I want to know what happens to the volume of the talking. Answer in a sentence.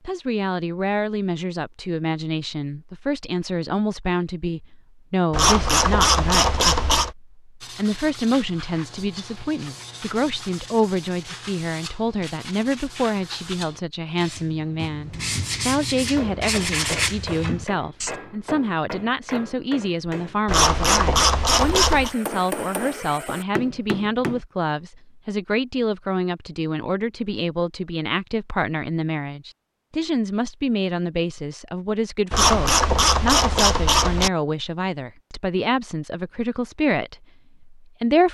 The loudness of the talking stays about the same.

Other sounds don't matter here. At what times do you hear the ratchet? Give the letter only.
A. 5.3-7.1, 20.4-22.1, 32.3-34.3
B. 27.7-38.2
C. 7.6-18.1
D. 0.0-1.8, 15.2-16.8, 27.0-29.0
A.